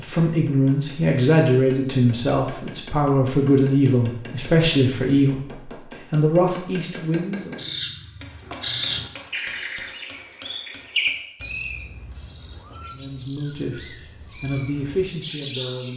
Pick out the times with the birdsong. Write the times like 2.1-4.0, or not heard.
7.5-15.9.